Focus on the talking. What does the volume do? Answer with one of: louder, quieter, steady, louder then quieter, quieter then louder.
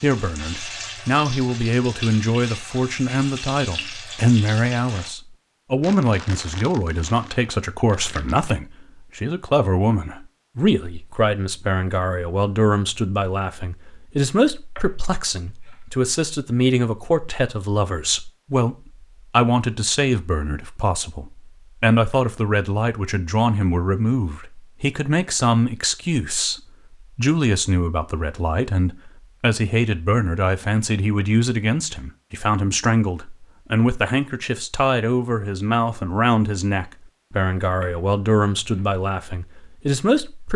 steady.